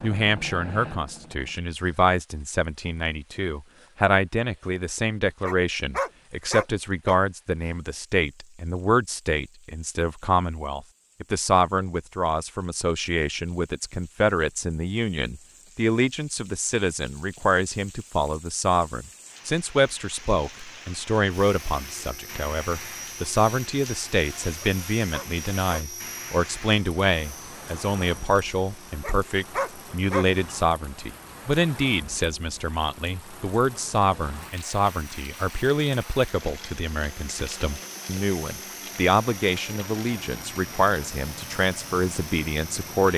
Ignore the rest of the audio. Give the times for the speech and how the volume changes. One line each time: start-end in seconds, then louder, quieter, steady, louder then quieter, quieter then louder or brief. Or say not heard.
0.0-43.1 steady.